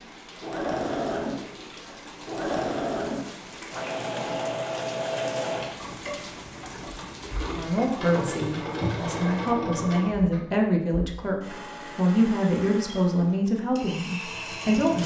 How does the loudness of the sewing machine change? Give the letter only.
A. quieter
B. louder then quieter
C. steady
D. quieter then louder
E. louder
A.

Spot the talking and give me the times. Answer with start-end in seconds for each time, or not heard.
7.5-15.0.